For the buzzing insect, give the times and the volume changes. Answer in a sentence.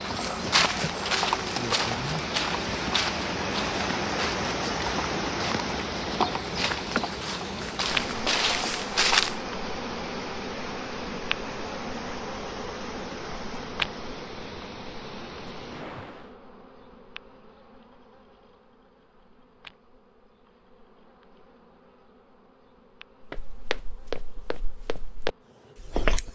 You can hear the buzzing insect from 0.0 to 26.2 s, getting quieter.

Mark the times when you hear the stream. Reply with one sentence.
The stream can be heard from 0.0 to 16.4 s.